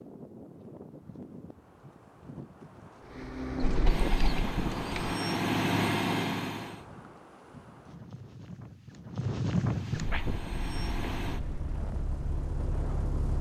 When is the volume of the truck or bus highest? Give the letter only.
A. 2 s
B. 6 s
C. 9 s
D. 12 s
B.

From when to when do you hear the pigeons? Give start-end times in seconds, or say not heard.
3.6-5.2.